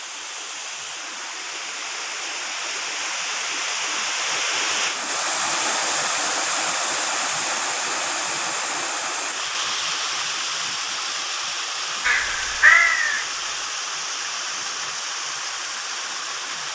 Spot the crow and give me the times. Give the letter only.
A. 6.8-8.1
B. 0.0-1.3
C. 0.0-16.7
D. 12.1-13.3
D.